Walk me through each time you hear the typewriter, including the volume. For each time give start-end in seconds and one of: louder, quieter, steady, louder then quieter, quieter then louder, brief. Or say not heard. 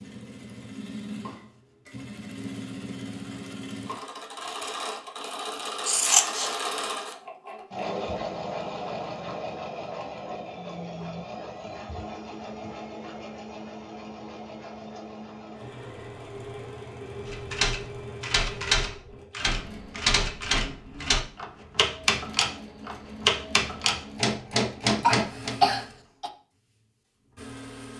17.2-25.6 steady.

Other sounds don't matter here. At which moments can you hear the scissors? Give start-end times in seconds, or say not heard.
5.8-6.7.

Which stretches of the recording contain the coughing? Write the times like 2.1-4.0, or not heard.
25.0-26.3.